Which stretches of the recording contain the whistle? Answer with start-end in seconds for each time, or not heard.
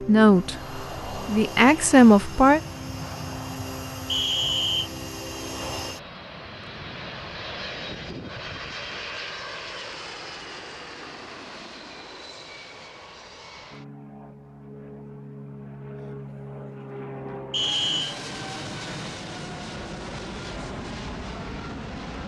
4.0-4.9, 17.5-18.1.